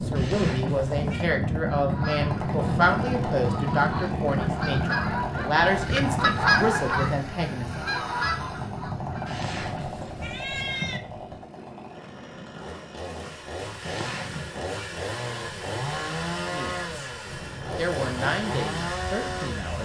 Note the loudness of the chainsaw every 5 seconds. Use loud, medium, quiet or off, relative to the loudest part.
loud, loud, medium, loud.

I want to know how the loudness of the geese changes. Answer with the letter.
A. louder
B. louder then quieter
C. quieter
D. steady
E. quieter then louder
B.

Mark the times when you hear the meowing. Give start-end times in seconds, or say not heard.
0.1-1.3, 9.2-11.0, 13.8-14.8.